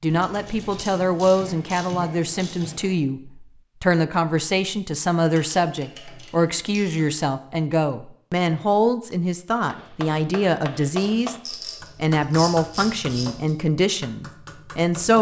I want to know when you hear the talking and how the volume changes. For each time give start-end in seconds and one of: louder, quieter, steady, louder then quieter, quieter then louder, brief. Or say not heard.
0.0-15.1 steady.